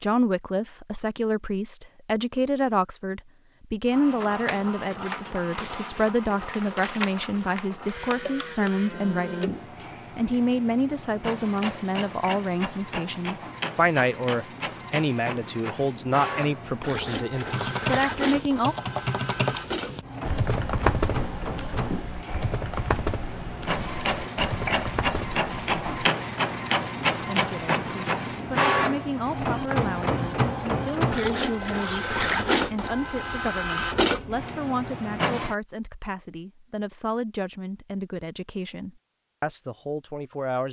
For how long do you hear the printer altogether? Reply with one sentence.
You can hear the printer for 32 seconds altogether.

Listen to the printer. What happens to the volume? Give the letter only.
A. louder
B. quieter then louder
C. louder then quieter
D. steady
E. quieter
A.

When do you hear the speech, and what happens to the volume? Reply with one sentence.
The speech can be heard from 0.0 to 18.8 s, at a steady volume; and from 27.2 to 40.6 s, at a steady volume.